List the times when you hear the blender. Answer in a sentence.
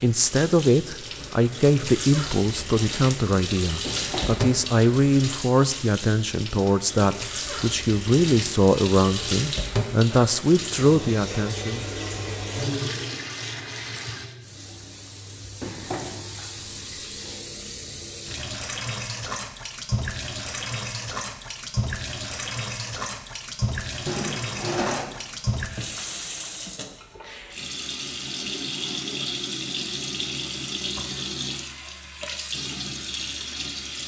The blender can't be heard in this clip.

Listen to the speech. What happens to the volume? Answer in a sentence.
The loudness of the speech stays about the same.